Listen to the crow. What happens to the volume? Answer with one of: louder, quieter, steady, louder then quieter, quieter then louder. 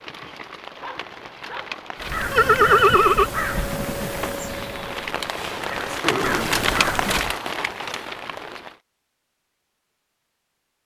quieter then louder.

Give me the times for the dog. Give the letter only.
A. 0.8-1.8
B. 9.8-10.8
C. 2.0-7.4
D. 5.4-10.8
A.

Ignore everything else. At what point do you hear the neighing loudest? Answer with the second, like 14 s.
3 s.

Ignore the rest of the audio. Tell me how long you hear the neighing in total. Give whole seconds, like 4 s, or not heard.
2 s.